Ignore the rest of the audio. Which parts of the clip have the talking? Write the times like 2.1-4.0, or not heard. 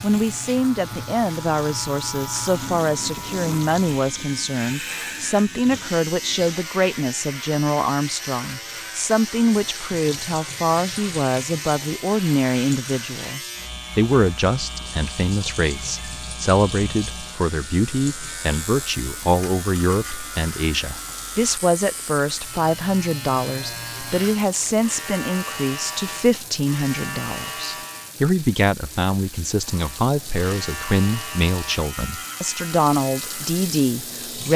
0.0-34.5.